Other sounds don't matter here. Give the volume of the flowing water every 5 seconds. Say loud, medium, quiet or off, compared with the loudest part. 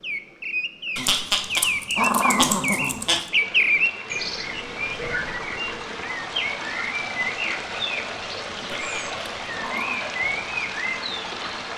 medium, loud, loud.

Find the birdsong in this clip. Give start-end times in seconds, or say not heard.
0.0-11.7.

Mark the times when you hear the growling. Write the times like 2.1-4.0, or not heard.
0.9-3.3, 8.6-10.1.